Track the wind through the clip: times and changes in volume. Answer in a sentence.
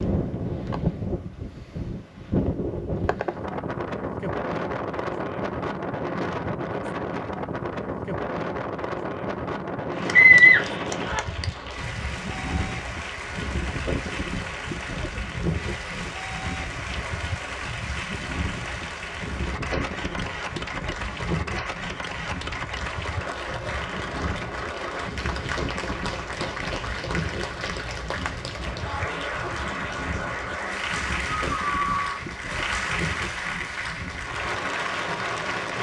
You can hear the wind from 0.0 to 35.7 s, getting quieter.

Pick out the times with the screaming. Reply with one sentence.
The screaming can be heard from 10.1 to 11.2 s and from 31.4 to 32.2 s.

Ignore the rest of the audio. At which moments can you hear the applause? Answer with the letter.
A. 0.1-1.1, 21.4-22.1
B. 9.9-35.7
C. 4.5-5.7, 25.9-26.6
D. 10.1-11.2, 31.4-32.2
B.